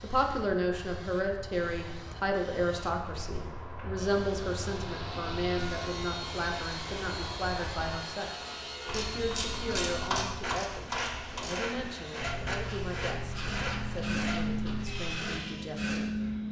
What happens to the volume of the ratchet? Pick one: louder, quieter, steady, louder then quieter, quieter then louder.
quieter.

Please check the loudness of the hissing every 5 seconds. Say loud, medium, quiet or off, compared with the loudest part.
medium, medium, loud, loud.